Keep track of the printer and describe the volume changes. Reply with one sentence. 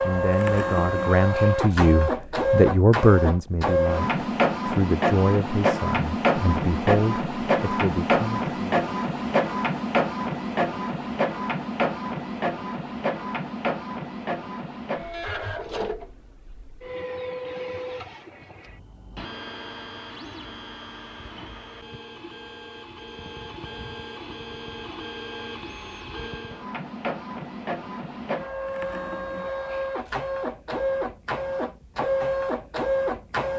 The volume of the printer goes down, then up.